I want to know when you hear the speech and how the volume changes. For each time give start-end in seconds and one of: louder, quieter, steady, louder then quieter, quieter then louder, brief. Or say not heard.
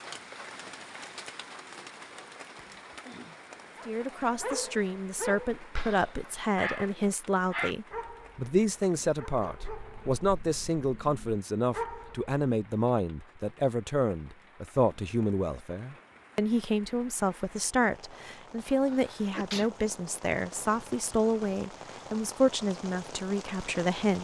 3.9-24.2 steady.